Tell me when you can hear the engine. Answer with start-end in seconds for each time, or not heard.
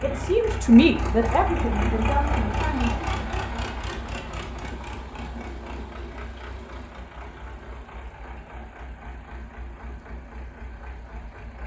0.0-11.6.